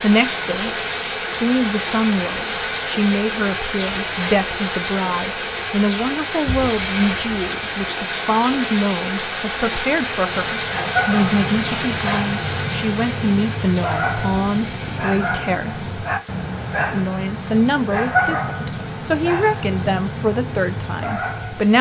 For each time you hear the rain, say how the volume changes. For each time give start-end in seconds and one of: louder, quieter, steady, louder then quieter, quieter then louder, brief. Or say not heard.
0.0-21.7 quieter.